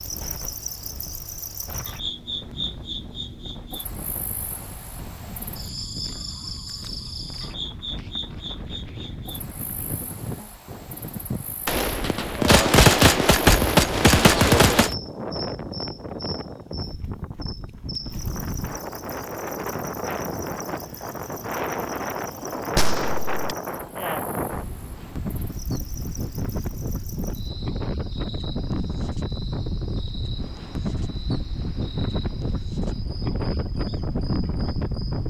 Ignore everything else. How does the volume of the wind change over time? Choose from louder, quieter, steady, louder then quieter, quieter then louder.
louder.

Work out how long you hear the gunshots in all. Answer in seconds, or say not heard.
4 s.